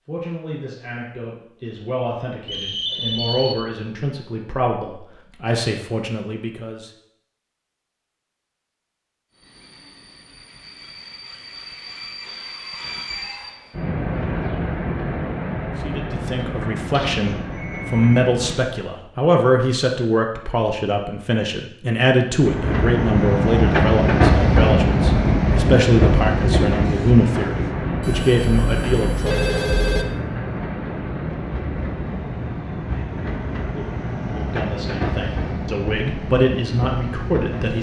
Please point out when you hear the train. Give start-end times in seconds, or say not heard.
9.3-18.8, 22.4-37.7.